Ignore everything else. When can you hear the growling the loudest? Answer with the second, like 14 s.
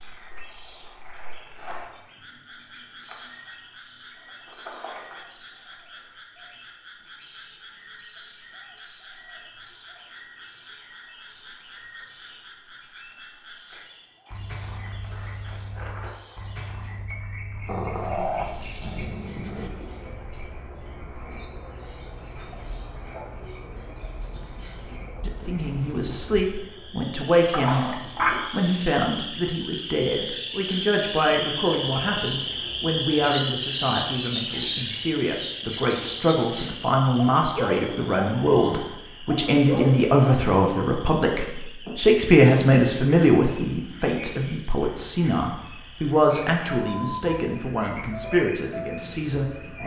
28 s.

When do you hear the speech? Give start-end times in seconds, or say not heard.
25.2-49.8.